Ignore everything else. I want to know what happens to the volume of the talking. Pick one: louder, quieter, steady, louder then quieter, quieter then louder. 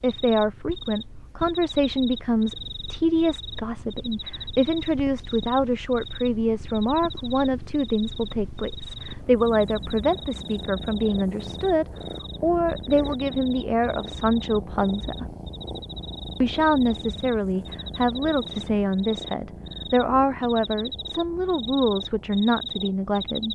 steady.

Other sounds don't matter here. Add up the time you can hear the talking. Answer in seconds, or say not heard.
22 s.